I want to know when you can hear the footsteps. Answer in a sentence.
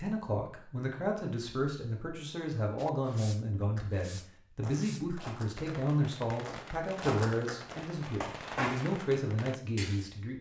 You can hear the footsteps from 3.6 to 8.9 s.